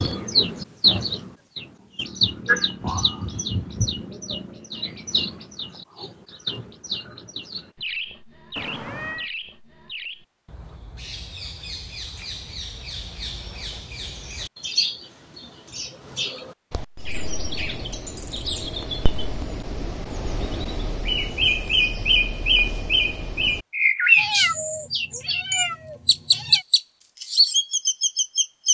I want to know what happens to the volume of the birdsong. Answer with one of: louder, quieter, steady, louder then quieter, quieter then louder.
quieter then louder.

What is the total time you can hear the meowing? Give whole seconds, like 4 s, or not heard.
3 s.